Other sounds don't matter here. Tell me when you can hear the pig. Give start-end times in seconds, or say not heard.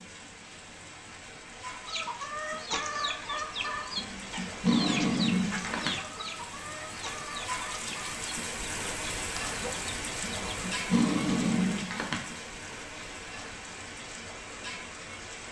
not heard.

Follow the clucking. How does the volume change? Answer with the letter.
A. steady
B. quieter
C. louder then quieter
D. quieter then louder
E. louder
B.